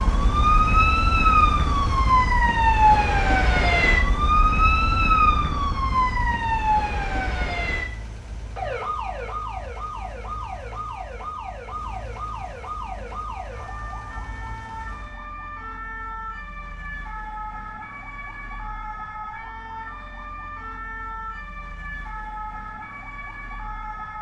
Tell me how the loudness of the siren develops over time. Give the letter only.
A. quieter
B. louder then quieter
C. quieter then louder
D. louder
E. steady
A.